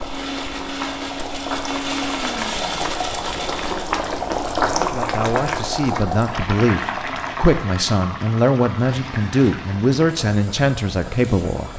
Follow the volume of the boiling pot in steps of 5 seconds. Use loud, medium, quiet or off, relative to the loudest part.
loud, loud, medium.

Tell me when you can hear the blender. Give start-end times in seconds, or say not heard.
0.0-4.0.